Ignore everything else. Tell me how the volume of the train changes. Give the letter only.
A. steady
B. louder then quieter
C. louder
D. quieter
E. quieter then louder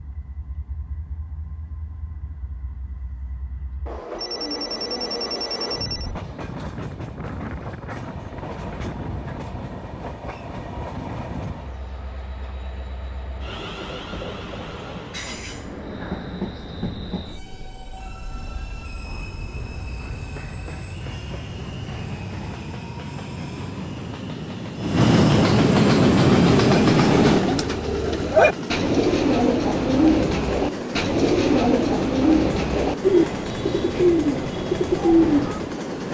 B.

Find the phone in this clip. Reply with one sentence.
The phone can be heard from 4.2 to 6.2 s.